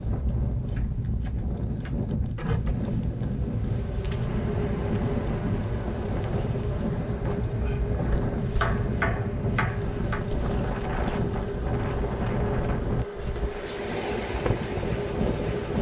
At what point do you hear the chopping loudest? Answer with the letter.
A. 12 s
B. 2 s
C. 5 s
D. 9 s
D.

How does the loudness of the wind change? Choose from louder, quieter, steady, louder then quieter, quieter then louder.
steady.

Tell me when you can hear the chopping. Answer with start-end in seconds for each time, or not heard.
0.7-2.0, 8.1-10.2.